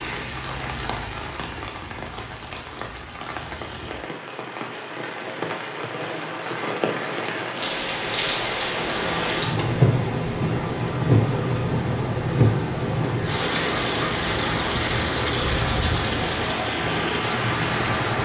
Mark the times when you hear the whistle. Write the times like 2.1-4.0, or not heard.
not heard.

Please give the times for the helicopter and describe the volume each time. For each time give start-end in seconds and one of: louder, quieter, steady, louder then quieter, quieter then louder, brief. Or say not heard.
8.8-18.2 steady.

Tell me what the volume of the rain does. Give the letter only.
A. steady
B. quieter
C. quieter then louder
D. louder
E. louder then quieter
D.